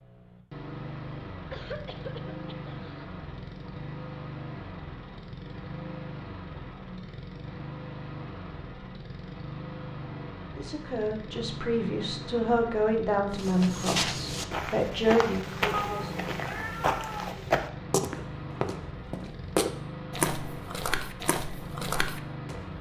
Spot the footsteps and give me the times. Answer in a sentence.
The footsteps can be heard from 13.3 to 22.7 s.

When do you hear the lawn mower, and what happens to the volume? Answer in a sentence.
The lawn mower can be heard from 0.0 to 22.7 s, at a steady volume.